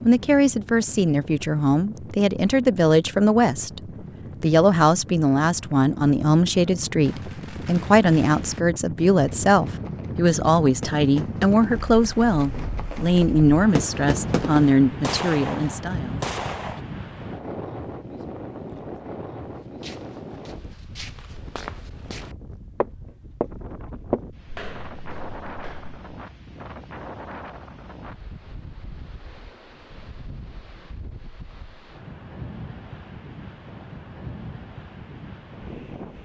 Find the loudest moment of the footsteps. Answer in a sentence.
The loudest moment of the footsteps is at 24 seconds.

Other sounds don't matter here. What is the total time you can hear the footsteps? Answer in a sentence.
You can hear the footsteps for 6 seconds altogether.